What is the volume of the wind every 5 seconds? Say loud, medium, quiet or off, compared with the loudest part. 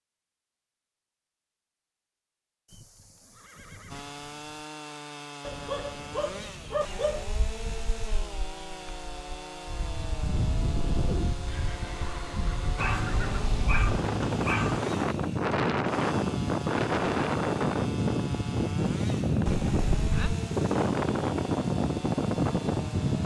off, quiet, medium, loud, loud.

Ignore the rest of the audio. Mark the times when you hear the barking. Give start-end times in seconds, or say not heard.
5.5-7.2, 12.8-14.8.